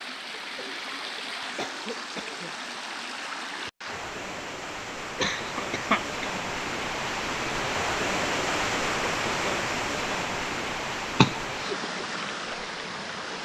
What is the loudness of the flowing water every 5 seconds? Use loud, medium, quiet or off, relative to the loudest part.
medium, loud, loud.